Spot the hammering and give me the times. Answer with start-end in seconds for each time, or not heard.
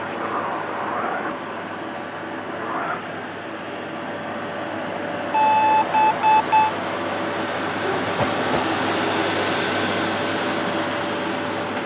not heard.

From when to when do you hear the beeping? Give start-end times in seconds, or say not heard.
5.3-6.7.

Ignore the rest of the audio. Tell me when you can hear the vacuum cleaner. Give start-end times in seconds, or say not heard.
0.0-11.8.